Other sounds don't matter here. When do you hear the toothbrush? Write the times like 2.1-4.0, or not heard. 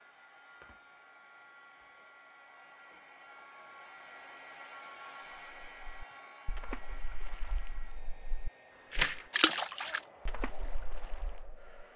not heard.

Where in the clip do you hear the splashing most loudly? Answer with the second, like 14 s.
9 s.